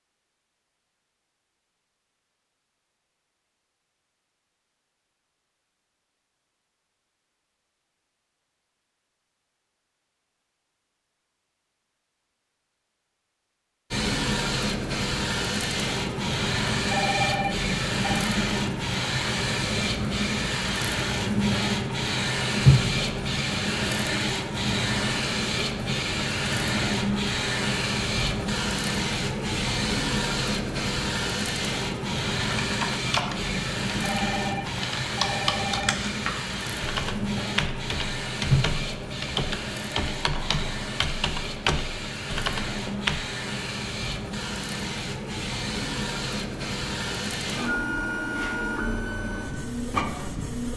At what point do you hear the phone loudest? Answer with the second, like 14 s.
17 s.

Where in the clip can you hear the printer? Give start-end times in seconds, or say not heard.
13.9-50.7.